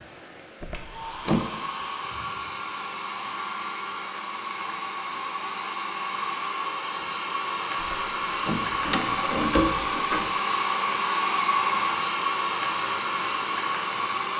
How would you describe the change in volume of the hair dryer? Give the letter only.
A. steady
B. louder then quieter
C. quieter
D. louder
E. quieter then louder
D.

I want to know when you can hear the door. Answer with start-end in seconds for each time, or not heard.
0.6-1.5, 7.8-10.3.